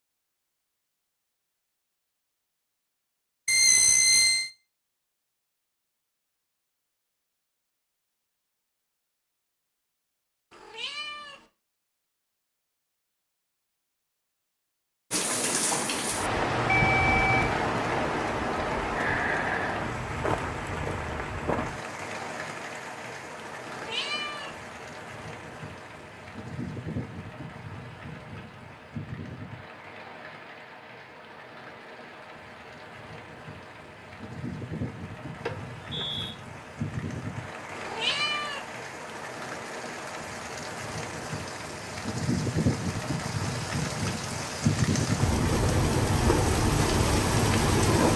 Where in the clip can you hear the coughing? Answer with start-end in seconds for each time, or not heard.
not heard.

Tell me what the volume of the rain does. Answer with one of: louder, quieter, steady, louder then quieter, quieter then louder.
quieter then louder.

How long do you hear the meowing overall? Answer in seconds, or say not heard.
3 s.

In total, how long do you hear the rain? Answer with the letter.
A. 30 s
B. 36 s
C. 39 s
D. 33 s
D.